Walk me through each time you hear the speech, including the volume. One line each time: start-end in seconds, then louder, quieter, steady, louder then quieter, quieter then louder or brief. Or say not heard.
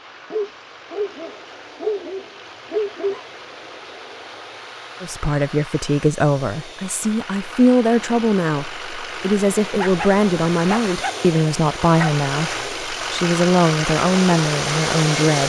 5.0-15.4 steady.